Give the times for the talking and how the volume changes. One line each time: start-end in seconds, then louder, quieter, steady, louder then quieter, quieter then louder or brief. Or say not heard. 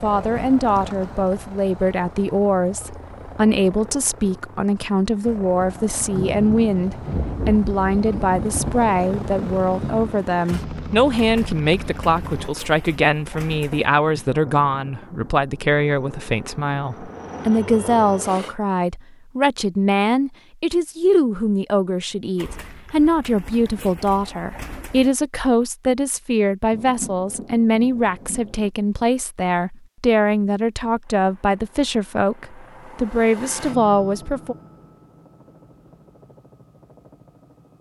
0.0-34.5 steady.